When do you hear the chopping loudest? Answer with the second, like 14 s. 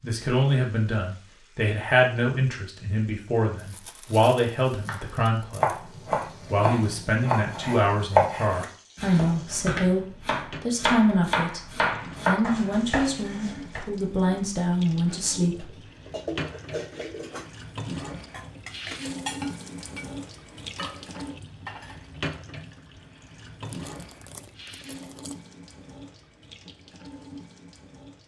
8 s.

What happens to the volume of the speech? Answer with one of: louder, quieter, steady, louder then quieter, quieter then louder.
steady.